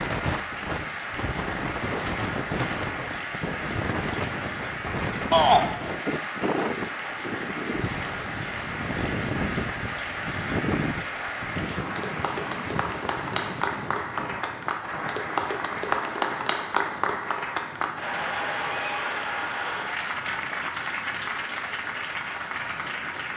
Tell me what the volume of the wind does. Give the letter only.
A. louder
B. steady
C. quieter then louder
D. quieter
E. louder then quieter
D.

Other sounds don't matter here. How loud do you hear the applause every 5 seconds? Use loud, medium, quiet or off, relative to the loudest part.
medium, medium, loud, loud, loud.